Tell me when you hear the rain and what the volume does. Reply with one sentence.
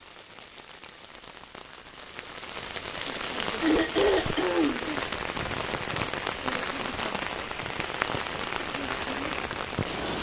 You can hear the rain from 0.0 to 10.1 s, getting louder.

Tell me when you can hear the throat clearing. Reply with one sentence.
The throat clearing can be heard from 3.6 to 4.8 s.